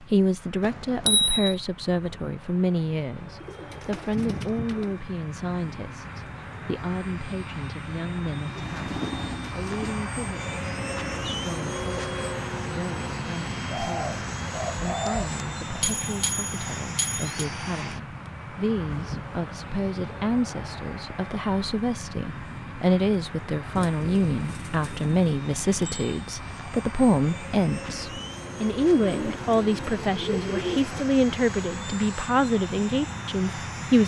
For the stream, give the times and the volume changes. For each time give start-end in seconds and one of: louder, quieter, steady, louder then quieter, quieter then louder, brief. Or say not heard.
not heard.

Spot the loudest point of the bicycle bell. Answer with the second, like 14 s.
1 s.